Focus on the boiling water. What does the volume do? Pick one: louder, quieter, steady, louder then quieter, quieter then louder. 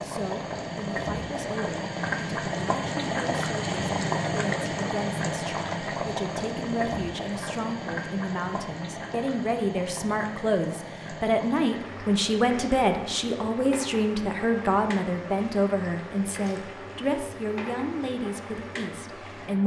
quieter.